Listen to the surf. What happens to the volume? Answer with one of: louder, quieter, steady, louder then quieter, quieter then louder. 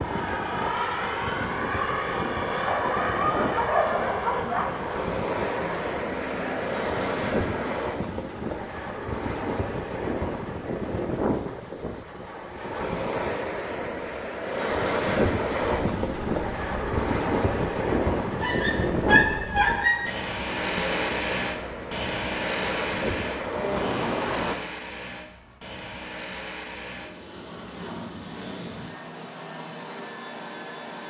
louder then quieter.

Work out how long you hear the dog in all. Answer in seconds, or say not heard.
4 s.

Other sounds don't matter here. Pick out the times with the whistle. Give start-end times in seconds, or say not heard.
not heard.